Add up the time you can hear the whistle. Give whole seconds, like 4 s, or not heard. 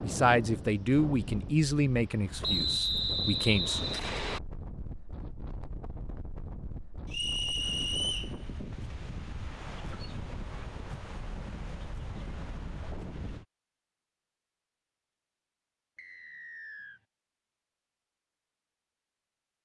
4 s.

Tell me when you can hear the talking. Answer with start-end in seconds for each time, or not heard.
0.0-3.8.